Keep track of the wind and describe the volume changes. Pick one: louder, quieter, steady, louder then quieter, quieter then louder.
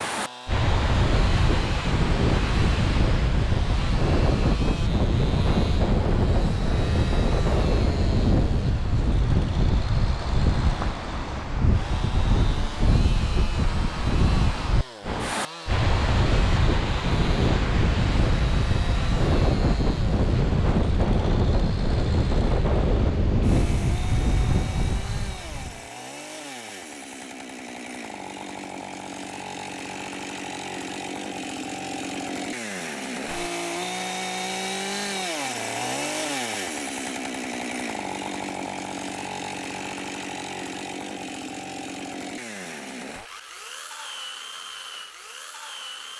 steady.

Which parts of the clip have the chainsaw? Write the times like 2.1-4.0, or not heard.
0.1-46.1.